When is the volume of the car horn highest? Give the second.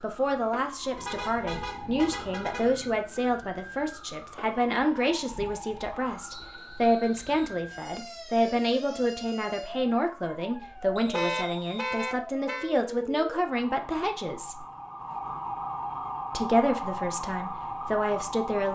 11 s.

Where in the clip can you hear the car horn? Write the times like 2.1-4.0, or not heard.
0.9-3.0, 10.6-12.7.